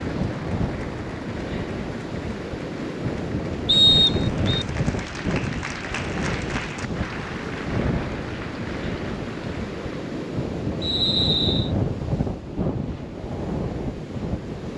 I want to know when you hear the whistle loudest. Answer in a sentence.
The loudest moment of the whistle is at 4 seconds.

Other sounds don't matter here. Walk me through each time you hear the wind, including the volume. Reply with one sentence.
The wind can be heard from 0.0 to 14.7 s, at a steady volume.